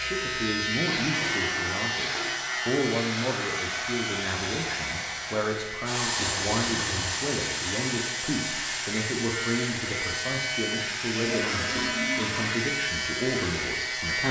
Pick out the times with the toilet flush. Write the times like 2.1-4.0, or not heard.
0.8-2.4, 6.2-7.3, 11.2-12.6.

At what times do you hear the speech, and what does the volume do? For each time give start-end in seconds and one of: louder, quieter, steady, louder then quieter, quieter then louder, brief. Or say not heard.
0.0-14.2 steady.